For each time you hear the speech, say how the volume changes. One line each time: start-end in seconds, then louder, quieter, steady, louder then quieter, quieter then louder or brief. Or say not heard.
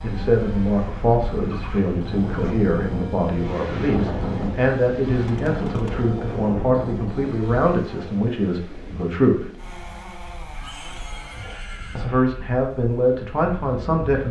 0.0-9.5 steady
11.9-14.2 brief.